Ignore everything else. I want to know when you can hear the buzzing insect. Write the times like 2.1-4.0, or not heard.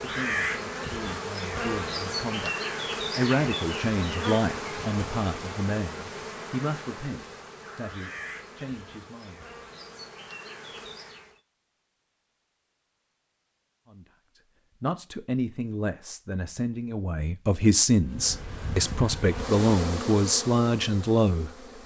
0.0-11.4, 18.0-21.8.